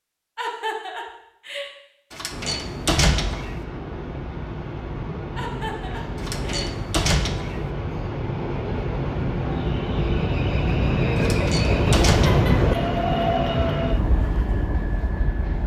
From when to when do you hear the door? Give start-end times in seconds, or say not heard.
2.1-3.5, 6.2-7.7, 11.2-12.3.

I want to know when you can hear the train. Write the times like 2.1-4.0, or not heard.
2.3-15.6.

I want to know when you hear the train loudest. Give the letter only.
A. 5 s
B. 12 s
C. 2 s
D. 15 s
B.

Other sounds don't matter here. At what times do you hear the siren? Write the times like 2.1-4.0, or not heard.
not heard.